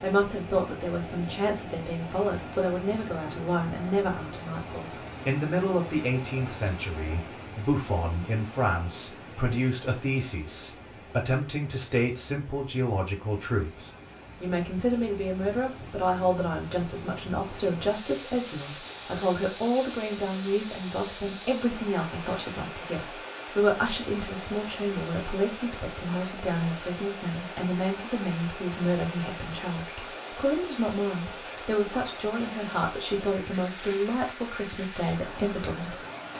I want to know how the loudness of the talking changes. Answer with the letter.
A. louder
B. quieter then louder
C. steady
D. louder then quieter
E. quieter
C.